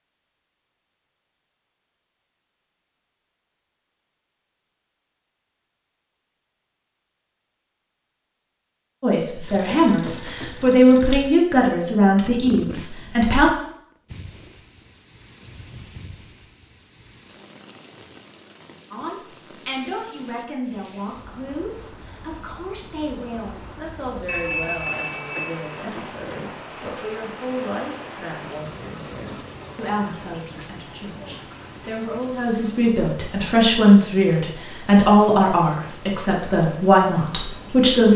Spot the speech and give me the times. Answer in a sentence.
The speech can be heard from 9.0 to 13.5 s and from 18.9 to 38.1 s.